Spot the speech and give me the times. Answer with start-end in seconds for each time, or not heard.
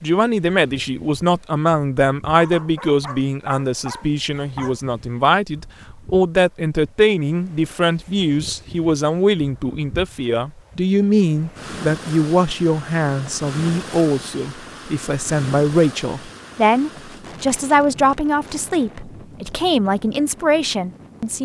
0.0-21.4.